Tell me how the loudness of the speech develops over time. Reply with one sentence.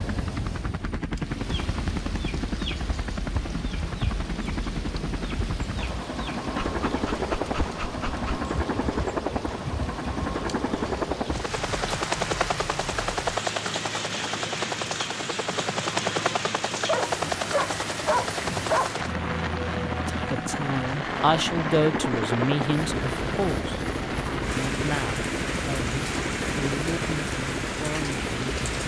The volume of the speech goes down.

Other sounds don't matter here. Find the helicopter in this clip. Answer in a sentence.
You can hear the helicopter from 0.0 to 28.8 s.